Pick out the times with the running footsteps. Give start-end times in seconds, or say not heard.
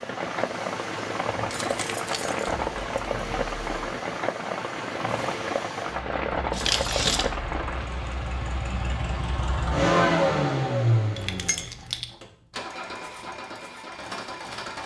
not heard.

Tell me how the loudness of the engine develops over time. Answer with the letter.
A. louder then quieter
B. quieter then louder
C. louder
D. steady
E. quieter
A.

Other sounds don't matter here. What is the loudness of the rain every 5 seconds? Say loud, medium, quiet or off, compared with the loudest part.
loud, loud, off.